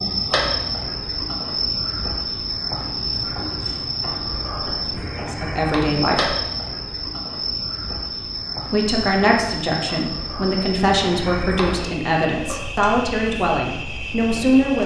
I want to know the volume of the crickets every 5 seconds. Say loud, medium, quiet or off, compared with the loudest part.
loud, loud, medium.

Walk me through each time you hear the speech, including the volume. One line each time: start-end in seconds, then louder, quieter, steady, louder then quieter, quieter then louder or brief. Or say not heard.
5.2-6.3 brief
8.7-14.8 steady.